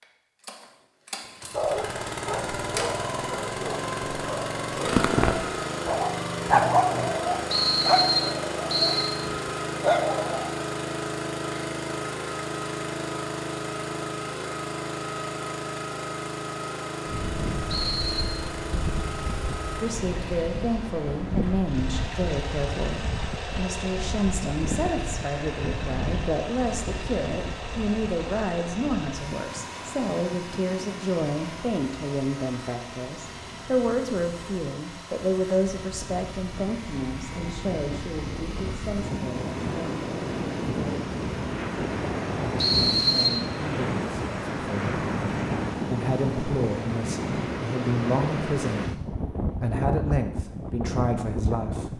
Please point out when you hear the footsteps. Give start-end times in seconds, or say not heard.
not heard.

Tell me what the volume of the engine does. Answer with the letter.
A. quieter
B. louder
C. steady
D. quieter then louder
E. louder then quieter
A.